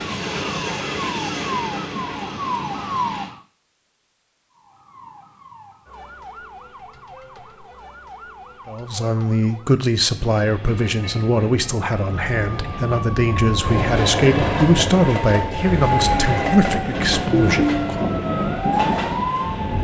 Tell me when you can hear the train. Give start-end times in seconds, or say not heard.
0.0-3.3, 10.1-19.7.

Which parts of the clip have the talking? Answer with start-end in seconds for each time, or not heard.
8.7-18.1.